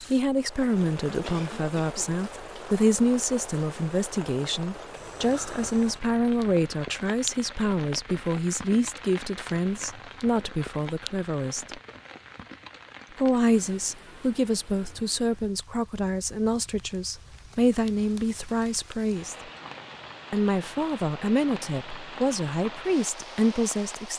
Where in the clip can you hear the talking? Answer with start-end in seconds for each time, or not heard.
0.1-11.8, 13.2-19.4, 20.3-24.1.